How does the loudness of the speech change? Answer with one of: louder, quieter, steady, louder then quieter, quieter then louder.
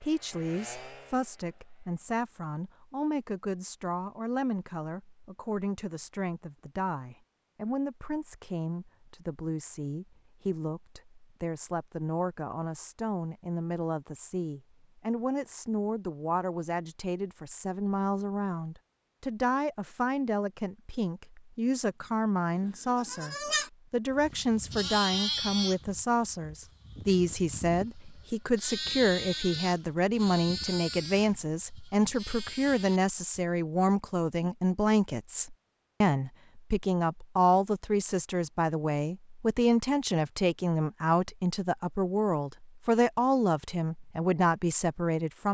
louder.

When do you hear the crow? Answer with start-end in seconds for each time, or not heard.
not heard.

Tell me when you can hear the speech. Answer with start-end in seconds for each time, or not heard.
0.0-45.4.